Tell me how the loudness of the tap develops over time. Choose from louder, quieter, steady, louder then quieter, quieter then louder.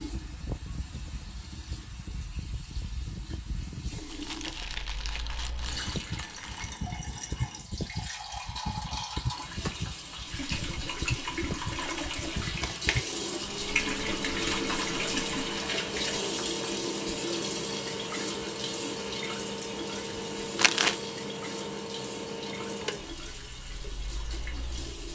louder then quieter.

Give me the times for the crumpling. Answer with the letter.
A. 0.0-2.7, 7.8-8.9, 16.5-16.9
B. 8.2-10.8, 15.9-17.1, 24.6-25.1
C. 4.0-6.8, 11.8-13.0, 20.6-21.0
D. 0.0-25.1
C.